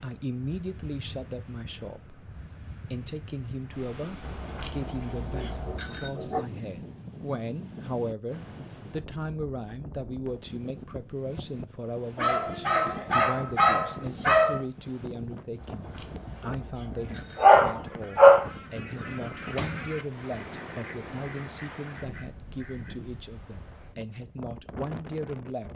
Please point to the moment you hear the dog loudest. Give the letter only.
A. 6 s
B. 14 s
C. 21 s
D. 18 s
D.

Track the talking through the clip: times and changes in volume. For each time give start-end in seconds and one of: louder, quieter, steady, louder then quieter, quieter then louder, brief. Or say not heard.
0.0-25.7 steady.